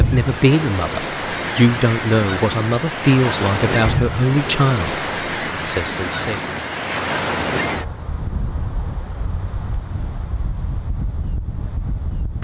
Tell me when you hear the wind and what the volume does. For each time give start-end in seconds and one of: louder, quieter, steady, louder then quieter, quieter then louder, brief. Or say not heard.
0.0-12.3 quieter.